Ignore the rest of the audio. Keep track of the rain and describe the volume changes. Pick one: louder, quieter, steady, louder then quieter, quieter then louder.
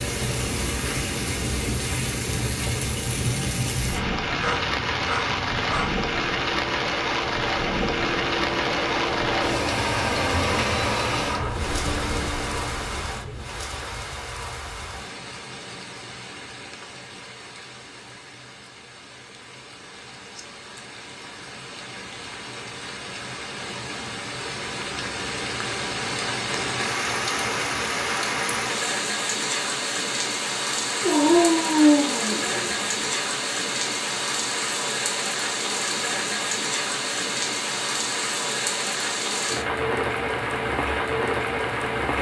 quieter then louder.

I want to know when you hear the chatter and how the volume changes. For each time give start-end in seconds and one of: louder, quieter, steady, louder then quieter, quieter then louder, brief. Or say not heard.
not heard.